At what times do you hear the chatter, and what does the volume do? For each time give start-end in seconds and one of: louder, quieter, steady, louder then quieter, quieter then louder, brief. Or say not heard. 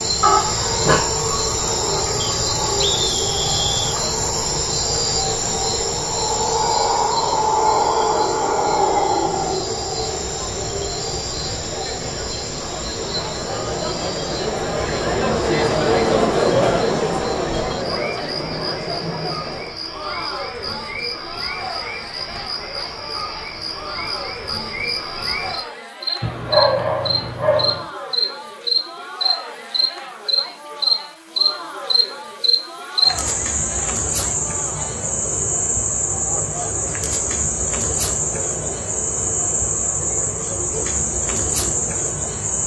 0.0-42.6 louder then quieter.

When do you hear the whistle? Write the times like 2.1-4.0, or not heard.
2.2-4.0.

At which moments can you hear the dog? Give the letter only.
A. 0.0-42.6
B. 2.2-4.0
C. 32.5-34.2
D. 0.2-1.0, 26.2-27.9
D.